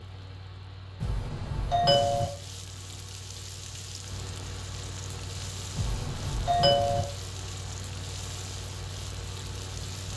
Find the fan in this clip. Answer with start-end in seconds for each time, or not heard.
0.0-10.1.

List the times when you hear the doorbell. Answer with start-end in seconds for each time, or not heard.
1.0-2.2, 5.8-7.0.